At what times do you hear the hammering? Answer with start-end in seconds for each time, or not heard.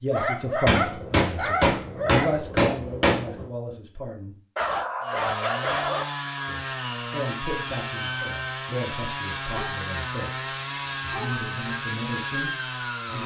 0.7-3.5.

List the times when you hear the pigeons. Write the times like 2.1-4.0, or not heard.
not heard.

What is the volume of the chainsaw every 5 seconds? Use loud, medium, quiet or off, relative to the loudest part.
off, loud, loud.